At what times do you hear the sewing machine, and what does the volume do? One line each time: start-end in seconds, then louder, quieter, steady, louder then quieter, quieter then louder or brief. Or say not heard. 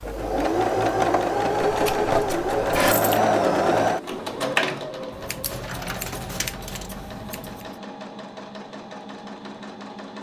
0.0-10.1 quieter.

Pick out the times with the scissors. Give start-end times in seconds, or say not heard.
1.6-3.0, 5.1-7.7.